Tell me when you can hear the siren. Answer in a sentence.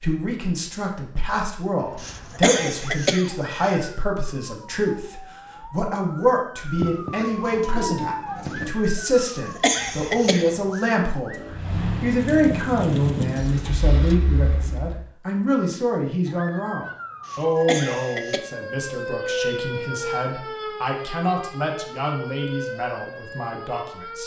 You can hear the siren from 1.8 to 11.4 s and from 16.2 to 24.2 s.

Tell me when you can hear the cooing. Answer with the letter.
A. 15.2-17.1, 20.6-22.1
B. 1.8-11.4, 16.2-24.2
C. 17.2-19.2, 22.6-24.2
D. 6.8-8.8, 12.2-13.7
D.